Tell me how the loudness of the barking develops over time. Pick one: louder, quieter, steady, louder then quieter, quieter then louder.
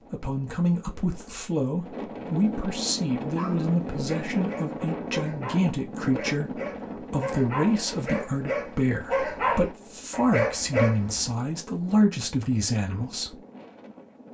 louder.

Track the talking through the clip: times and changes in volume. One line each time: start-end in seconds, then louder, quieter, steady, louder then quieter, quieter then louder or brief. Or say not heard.
0.1-13.4 steady.